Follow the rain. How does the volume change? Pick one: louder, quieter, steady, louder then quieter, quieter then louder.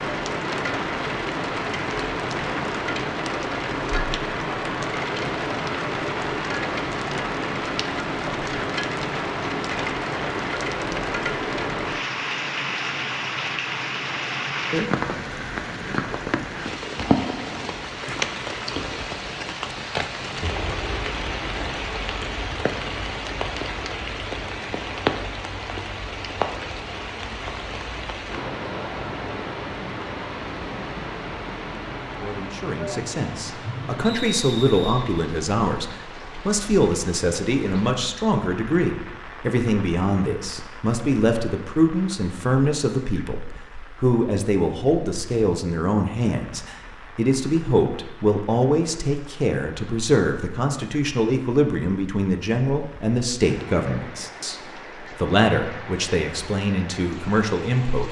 quieter.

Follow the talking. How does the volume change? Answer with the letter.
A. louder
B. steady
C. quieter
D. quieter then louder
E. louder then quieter
B.